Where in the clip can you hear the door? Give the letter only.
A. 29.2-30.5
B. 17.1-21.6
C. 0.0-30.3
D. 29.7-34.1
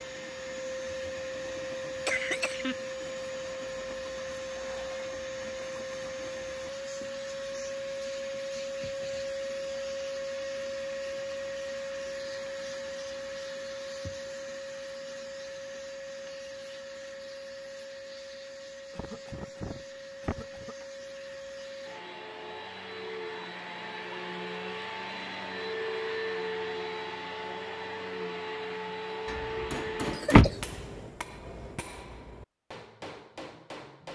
A.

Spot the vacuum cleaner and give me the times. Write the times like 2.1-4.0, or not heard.
0.0-30.3.